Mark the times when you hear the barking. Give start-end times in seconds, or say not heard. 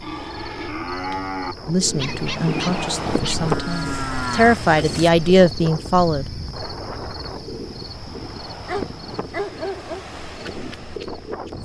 1.9-3.5, 8.7-10.1.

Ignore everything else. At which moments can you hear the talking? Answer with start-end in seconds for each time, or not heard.
1.6-6.2.